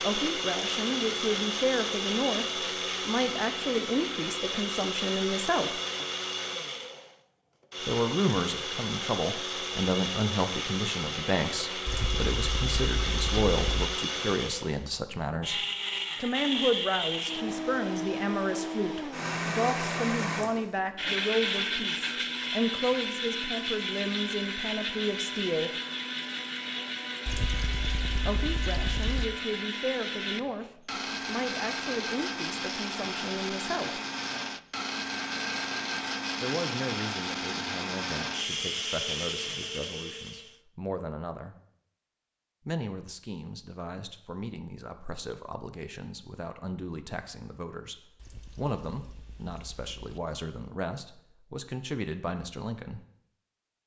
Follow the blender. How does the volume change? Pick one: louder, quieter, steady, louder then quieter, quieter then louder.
steady.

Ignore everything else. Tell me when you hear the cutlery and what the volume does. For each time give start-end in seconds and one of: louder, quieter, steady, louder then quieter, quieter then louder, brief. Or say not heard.
not heard.